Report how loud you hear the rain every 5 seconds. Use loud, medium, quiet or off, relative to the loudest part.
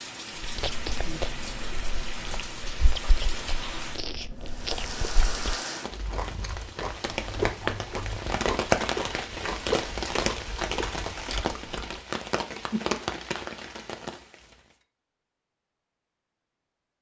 medium, loud, loud, off.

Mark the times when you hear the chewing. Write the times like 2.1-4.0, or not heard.
0.3-12.0.